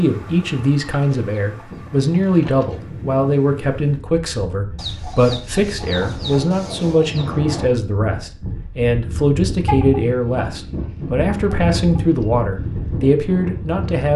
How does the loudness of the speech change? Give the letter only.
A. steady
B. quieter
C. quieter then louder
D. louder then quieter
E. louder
A.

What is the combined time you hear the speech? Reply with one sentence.
The speech can be heard for 14 seconds in total.